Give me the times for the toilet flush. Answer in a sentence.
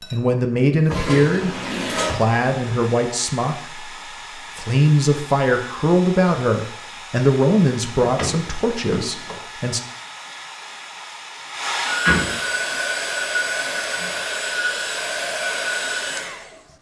The toilet flush can be heard from 0.8 to 2.2 s.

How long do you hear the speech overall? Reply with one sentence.
The speech can be heard for 10 seconds in total.